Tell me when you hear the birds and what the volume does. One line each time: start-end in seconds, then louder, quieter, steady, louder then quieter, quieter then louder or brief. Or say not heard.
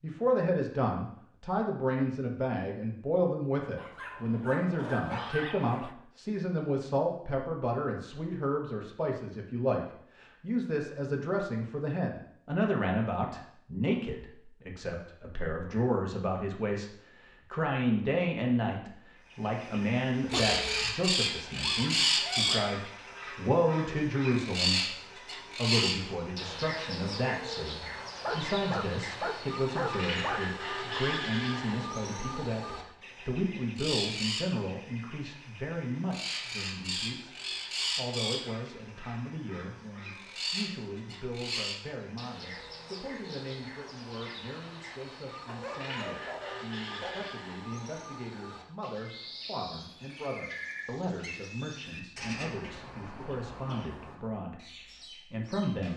19.4-55.9 quieter.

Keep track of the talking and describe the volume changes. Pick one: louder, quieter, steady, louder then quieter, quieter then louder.
quieter.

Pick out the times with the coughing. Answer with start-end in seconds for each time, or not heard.
20.3-20.9, 53.1-54.0.